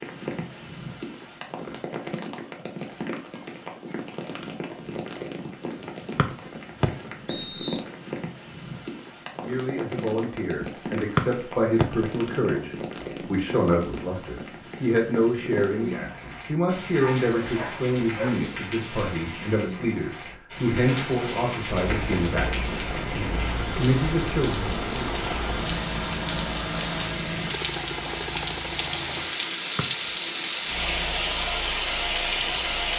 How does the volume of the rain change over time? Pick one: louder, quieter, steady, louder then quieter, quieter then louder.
louder.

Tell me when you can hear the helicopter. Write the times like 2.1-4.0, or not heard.
21.8-29.3.